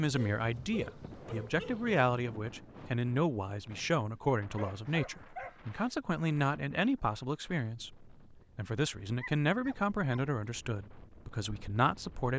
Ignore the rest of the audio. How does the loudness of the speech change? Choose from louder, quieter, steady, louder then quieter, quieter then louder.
steady.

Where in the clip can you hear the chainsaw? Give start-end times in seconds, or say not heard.
not heard.